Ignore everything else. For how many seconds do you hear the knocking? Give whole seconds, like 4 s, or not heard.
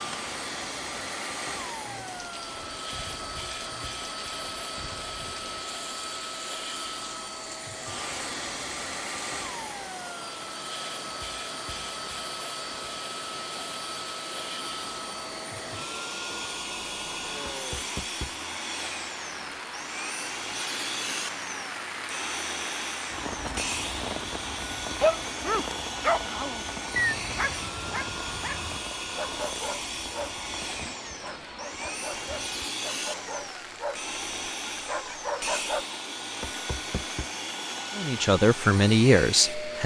2 s.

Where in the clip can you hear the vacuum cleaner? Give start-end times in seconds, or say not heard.
0.0-39.8.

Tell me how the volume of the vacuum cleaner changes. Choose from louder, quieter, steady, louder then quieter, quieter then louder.
steady.